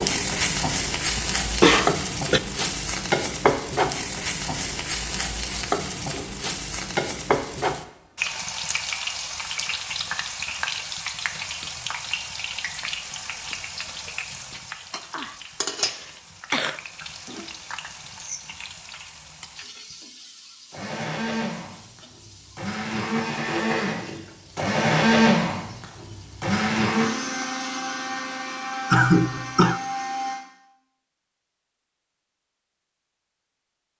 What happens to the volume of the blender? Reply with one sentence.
The volume of the blender goes up, then down.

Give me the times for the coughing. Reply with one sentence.
You can hear the coughing from 1.1 to 2.4 s, from 15.1 to 16.8 s and from 28.9 to 29.8 s.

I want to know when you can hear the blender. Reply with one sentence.
You can hear the blender from 20.7 to 30.4 s.